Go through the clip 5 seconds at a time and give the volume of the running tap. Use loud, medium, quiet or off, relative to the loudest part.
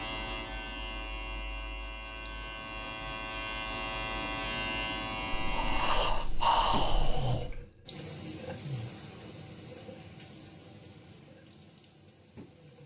quiet, loud, medium.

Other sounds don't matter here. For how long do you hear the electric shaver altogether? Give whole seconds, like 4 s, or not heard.
6 s.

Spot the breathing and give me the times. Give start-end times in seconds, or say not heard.
5.3-7.7.